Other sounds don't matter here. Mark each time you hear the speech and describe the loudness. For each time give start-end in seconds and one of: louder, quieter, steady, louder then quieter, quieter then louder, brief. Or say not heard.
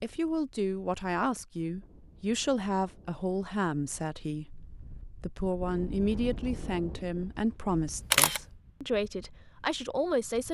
0.0-10.5 steady.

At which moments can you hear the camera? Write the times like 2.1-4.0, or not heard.
7.7-8.4.